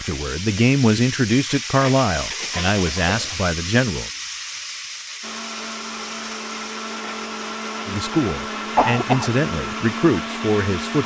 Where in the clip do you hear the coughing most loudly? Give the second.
9 s.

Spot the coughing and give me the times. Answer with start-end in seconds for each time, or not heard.
2.4-3.3, 8.8-9.3.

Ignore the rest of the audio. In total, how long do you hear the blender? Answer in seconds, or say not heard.
6 s.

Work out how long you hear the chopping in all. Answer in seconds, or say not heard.
not heard.